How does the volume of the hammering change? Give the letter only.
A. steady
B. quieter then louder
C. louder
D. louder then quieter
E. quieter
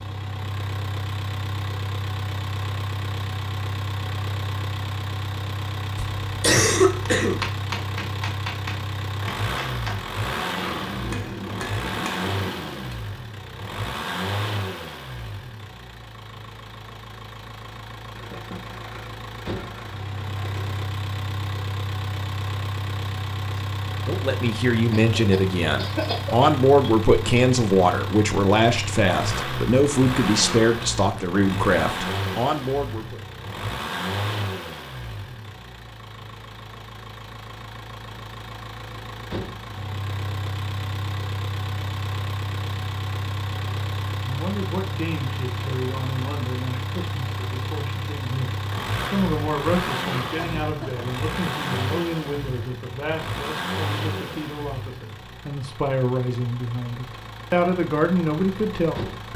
A.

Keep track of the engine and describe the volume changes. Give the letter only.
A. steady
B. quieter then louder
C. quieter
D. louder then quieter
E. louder
A.